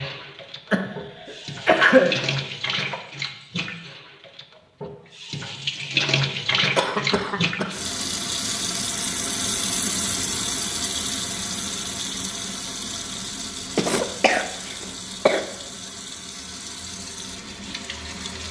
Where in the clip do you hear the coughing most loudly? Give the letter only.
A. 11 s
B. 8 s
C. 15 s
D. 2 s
D.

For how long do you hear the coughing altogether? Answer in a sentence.
You can hear the coughing for 4 seconds altogether.